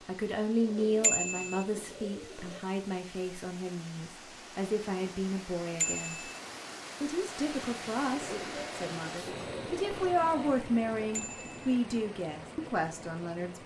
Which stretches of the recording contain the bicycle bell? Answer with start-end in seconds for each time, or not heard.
1.0-1.6, 5.8-6.4, 11.1-11.8.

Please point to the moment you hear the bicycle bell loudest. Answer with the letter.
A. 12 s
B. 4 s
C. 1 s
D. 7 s
C.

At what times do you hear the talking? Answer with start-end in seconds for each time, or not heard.
0.1-6.3, 7.0-13.6.